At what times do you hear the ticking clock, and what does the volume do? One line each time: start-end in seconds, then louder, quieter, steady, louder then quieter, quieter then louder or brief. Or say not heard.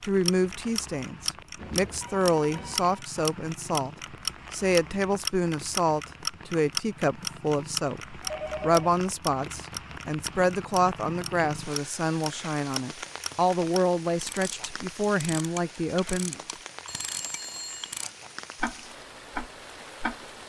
0.0-20.4 quieter.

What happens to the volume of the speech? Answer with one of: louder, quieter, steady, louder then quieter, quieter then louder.
steady.